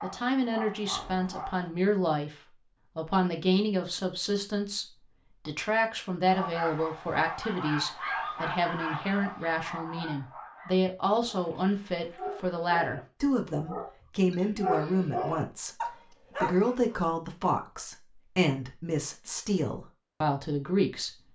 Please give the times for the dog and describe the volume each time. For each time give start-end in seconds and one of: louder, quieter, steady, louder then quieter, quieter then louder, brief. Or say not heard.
0.0-1.7 brief
6.2-16.9 quieter then louder.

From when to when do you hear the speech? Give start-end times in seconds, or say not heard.
0.0-2.4, 3.0-21.2.